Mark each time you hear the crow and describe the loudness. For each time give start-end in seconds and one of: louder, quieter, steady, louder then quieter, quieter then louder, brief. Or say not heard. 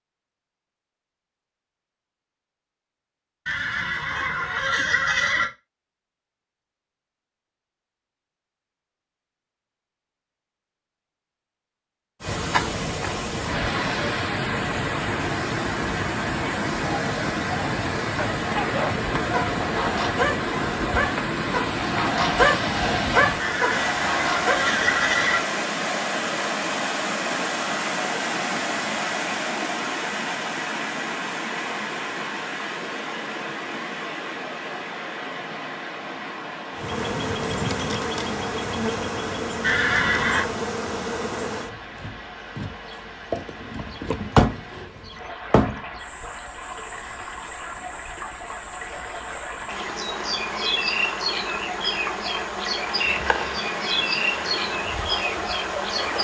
not heard.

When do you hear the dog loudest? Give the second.
22 s.